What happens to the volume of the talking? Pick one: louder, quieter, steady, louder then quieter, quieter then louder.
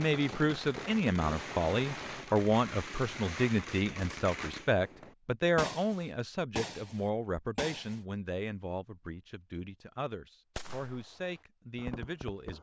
quieter.